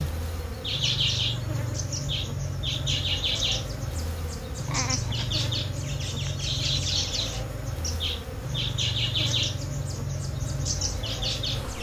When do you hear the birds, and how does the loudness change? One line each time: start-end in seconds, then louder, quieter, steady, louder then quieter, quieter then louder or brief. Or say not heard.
0.0-11.7 steady.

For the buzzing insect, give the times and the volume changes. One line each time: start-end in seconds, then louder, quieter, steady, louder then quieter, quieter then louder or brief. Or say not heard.
0.0-11.7 steady.